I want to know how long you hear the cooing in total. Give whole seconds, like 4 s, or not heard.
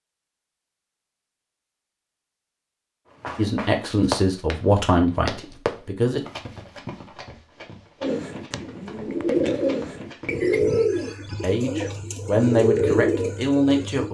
6 s.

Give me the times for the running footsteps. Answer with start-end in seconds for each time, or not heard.
3.2-10.7.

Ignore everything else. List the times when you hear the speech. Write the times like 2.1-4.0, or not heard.
3.4-6.2, 11.2-14.0.